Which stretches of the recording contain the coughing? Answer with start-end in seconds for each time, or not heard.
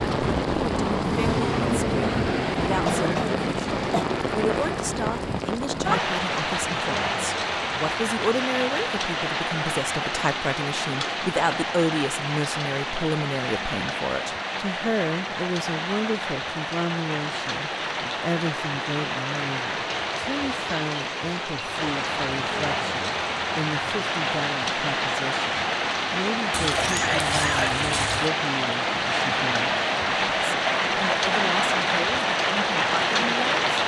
2.6-4.0, 26.8-27.8.